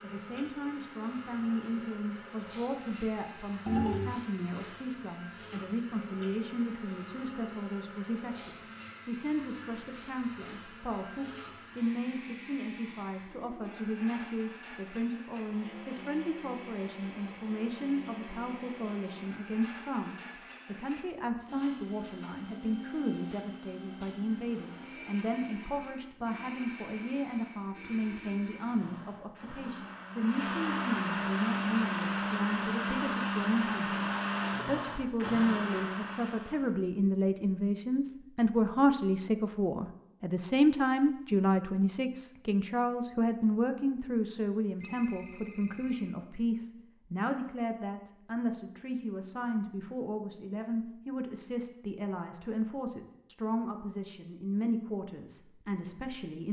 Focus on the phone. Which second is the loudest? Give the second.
4 s.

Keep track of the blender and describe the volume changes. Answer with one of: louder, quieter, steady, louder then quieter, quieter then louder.
louder.